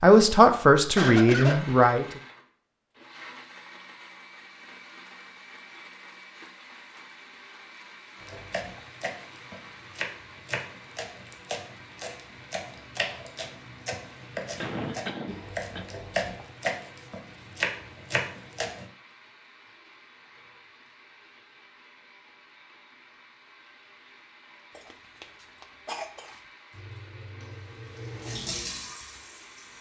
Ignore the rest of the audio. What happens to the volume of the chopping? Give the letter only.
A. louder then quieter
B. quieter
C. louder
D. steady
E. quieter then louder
C.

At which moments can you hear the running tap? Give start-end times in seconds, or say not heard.
26.7-29.7.